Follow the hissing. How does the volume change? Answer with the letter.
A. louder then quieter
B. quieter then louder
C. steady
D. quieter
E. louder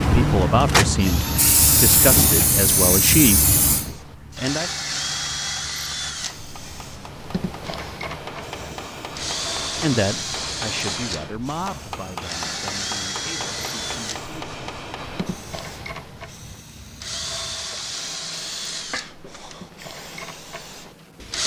D.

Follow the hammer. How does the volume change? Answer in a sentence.
The loudness of the hammer goes up.